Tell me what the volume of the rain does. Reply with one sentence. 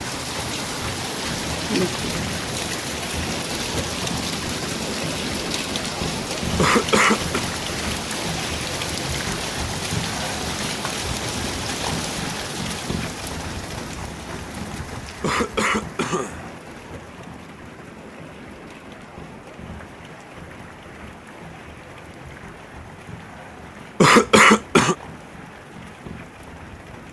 The loudness of the rain goes down.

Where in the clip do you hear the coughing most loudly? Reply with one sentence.
The loudest moment of the coughing is at 24 seconds.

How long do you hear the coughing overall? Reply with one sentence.
The coughing can be heard for 3 seconds in total.